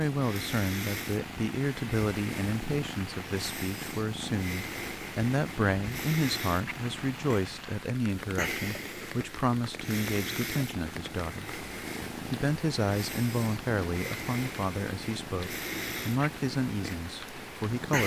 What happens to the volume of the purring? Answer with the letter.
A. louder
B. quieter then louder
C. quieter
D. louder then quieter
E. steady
E.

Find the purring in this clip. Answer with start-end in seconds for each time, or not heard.
0.0-18.0.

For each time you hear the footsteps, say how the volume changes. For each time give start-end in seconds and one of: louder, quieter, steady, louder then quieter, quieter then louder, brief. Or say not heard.
not heard.